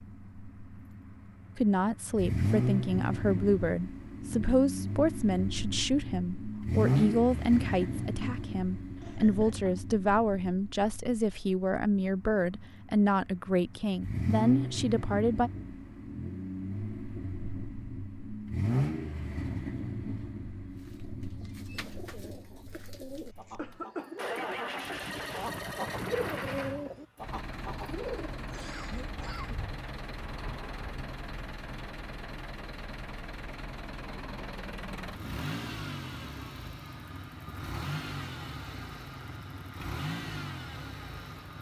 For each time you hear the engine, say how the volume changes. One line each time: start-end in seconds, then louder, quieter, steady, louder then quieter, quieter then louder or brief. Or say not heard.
0.0-41.5 quieter.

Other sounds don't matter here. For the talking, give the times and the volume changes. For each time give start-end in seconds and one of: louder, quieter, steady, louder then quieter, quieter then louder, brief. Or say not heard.
1.6-15.5 steady.